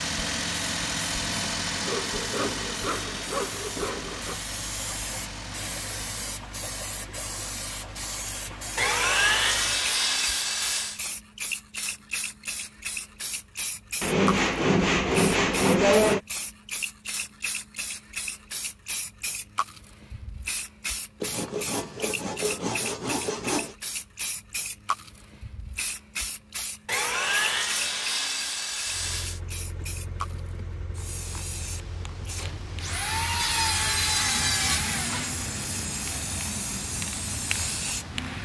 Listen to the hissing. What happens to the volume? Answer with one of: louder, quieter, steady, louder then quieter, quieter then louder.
steady.